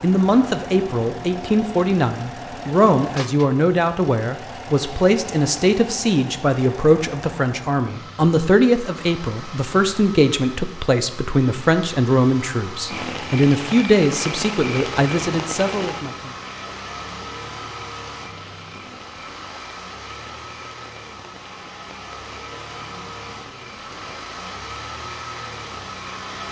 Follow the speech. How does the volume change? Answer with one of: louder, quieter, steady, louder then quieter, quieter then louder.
steady.